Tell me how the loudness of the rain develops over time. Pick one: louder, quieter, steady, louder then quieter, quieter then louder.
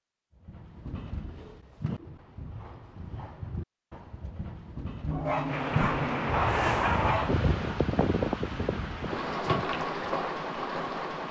steady.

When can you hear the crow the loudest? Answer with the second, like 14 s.
7 s.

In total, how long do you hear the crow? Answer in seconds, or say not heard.
2 s.